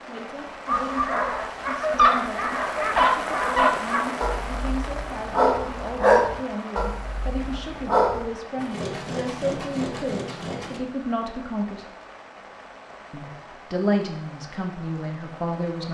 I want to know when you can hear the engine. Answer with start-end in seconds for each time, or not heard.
8.6-10.8.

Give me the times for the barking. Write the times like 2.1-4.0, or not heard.
0.7-8.3.